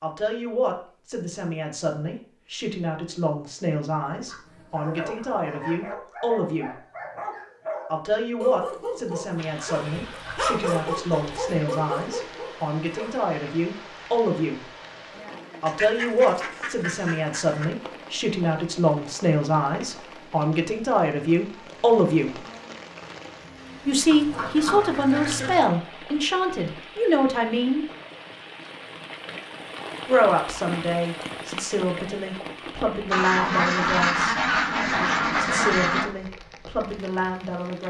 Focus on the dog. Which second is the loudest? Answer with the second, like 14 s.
11 s.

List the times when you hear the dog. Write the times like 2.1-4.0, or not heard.
4.8-13.2.